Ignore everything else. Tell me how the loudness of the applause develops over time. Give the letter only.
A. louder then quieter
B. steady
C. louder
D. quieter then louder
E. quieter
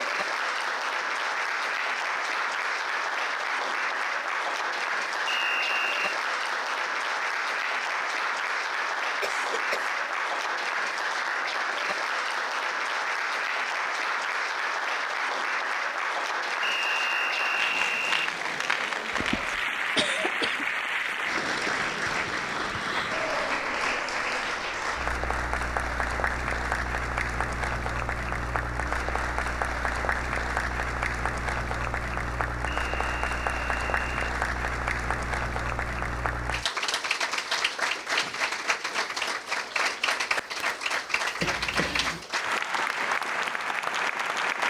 B.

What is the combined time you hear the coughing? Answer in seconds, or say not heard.
3 s.